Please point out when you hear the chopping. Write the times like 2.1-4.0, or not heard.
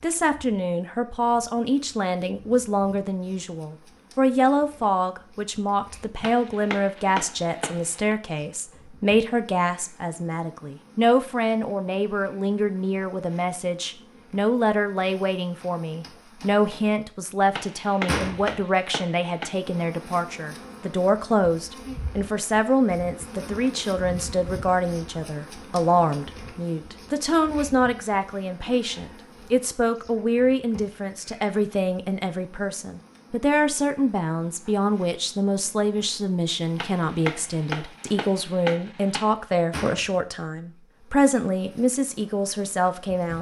6.2-8.2, 17.5-19.5, 36.8-39.3.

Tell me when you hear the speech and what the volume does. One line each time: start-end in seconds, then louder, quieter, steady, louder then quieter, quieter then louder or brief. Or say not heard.
0.0-43.3 steady.